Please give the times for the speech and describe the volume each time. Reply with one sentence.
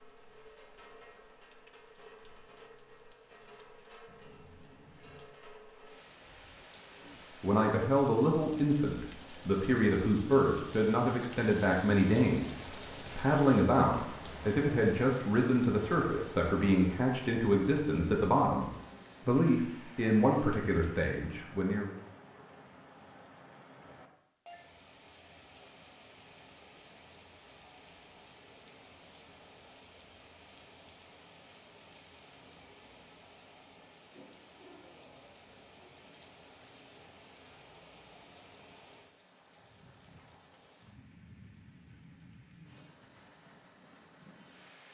You can hear the speech from 7.2 to 21.9 s, at a steady volume.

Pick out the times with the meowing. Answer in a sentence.
The meowing can be heard from 4.0 to 5.3 s.